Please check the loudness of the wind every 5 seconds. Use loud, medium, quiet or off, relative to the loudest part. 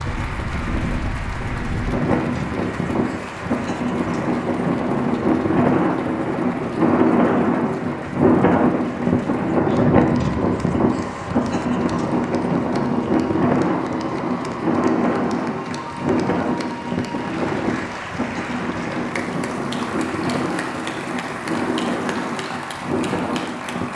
medium, loud, loud, medium, medium.